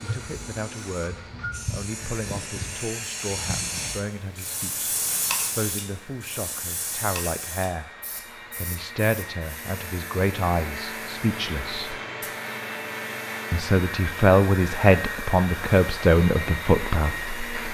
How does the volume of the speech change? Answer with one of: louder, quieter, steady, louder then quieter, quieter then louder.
louder.